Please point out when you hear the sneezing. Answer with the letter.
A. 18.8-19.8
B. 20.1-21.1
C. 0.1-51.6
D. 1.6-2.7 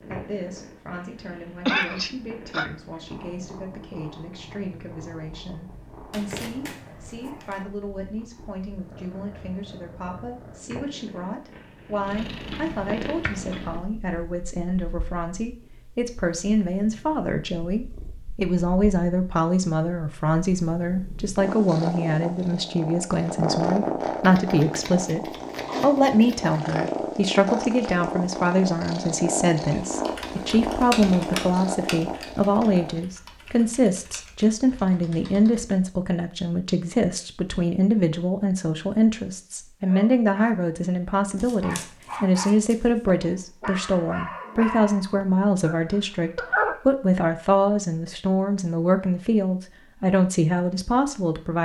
D.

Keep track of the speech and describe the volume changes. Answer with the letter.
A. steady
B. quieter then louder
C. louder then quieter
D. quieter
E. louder
E.